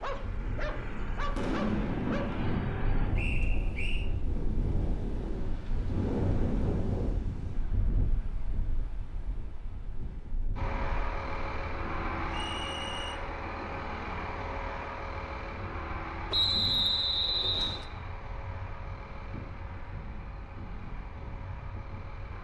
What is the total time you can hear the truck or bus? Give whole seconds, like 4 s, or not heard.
15 s.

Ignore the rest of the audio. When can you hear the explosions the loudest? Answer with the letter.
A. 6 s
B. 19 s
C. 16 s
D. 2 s
D.